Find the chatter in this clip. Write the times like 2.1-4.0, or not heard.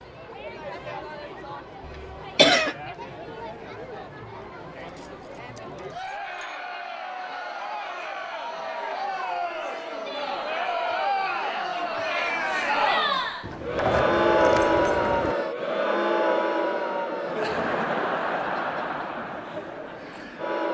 0.0-20.6.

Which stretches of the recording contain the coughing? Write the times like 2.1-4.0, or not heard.
1.9-2.8.